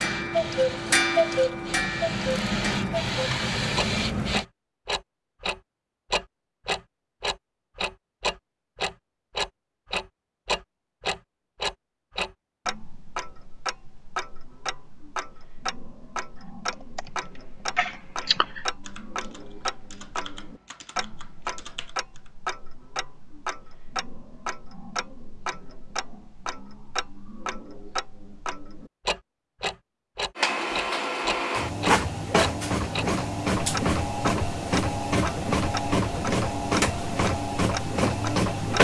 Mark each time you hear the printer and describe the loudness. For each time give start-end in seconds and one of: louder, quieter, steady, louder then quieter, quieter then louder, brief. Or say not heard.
0.0-4.5 louder
30.4-38.8 steady.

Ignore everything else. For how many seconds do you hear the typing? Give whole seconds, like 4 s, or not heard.
6 s.